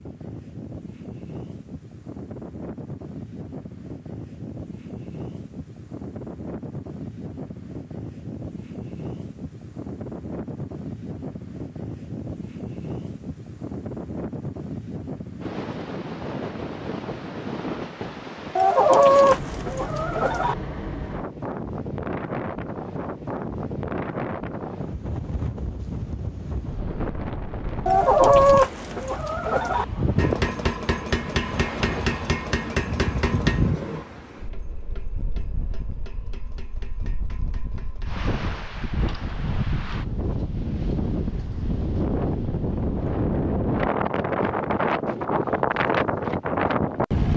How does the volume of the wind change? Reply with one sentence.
The volume of the wind goes up.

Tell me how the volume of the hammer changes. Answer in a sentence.
The loudness of the hammer goes down.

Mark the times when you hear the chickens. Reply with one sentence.
The chickens can be heard from 18.6 to 20.6 s and from 27.9 to 29.9 s.